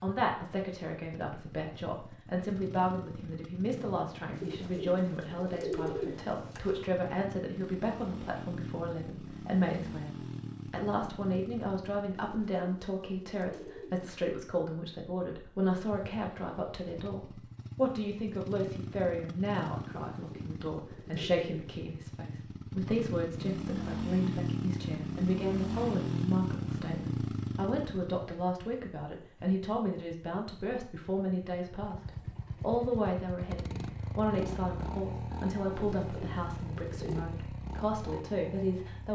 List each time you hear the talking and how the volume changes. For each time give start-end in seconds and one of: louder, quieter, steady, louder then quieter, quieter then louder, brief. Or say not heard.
0.0-39.1 steady.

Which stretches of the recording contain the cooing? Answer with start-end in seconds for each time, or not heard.
4.3-6.8, 12.2-14.1, 20.1-21.8, 35.7-37.2.